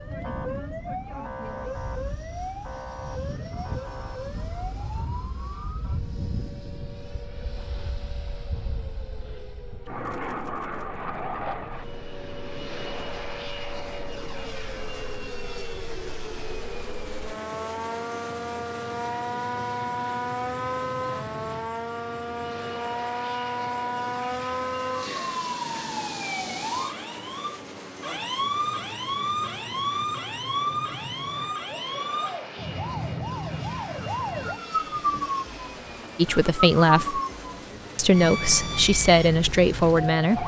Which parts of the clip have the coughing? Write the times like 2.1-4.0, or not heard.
not heard.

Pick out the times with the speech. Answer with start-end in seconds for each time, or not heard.
36.1-37.2, 38.0-40.4.